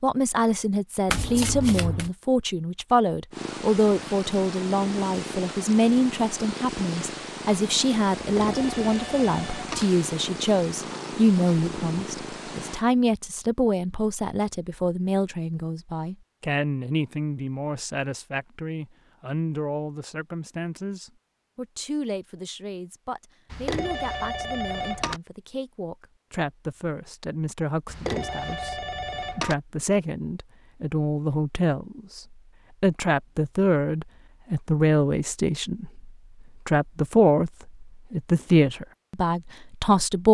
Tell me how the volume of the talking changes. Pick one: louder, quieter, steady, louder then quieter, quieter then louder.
quieter then louder.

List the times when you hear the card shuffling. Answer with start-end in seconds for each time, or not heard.
1.1-2.1.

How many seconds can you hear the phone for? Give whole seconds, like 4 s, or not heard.
5 s.